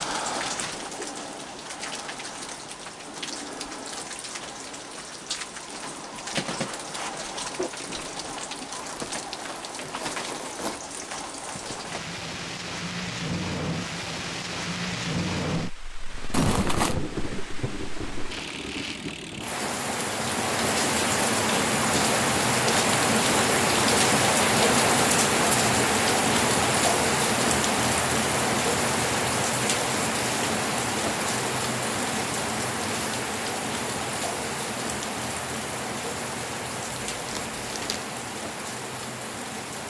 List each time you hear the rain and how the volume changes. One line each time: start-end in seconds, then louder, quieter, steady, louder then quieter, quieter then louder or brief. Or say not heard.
0.0-39.8 louder then quieter.